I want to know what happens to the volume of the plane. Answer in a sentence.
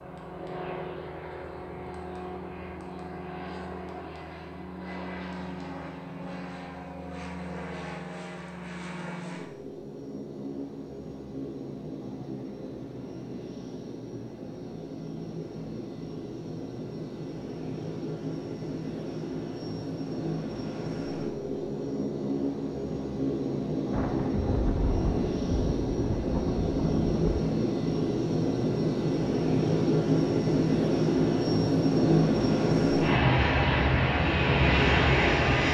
The loudness of the plane goes up.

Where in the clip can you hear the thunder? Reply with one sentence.
The thunder can be heard from 23.9 to 27.4 s.